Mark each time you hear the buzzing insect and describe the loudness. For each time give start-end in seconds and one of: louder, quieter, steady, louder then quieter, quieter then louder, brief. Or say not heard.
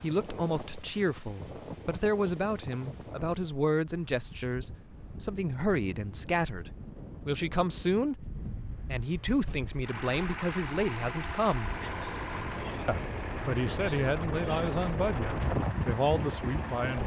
not heard.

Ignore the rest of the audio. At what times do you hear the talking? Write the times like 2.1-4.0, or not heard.
0.0-11.7, 12.8-17.0.